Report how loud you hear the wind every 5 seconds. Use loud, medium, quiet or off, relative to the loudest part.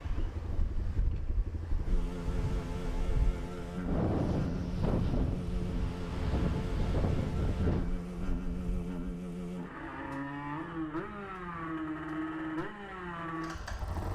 loud, loud, off.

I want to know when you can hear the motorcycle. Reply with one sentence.
You can hear the motorcycle from 0.0 to 14.1 s.